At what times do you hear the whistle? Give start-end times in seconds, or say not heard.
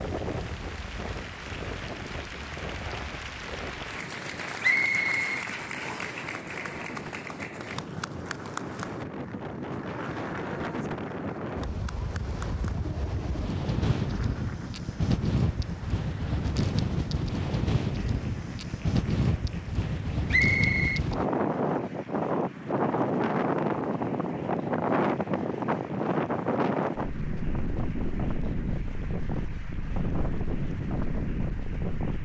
4.6-6.2, 20.3-21.0.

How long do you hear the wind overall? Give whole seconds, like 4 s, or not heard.
32 s.